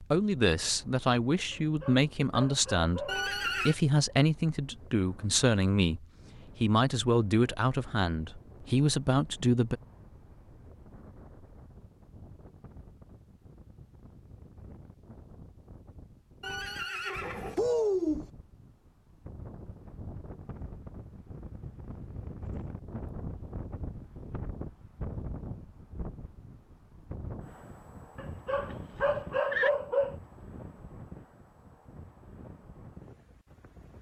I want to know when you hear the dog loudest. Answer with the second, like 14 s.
30 s.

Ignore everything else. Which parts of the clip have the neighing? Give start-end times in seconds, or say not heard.
3.0-3.8, 16.4-18.2, 28.7-29.7.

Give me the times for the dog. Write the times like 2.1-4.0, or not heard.
1.5-3.3, 28.1-30.1.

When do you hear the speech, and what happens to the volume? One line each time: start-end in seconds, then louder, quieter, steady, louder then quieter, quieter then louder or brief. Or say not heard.
0.0-9.8 steady.